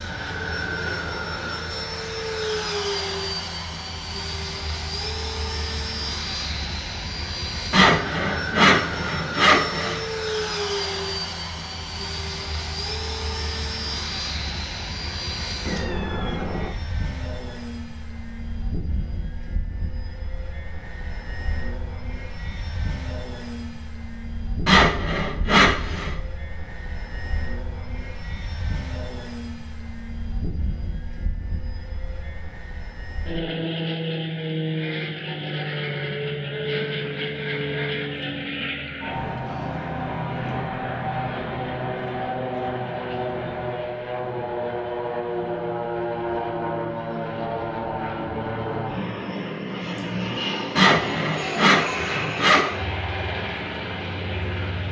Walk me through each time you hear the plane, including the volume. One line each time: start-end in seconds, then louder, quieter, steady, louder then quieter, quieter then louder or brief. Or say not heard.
0.0-54.8 quieter then louder.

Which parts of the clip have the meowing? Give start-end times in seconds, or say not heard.
15.7-16.7.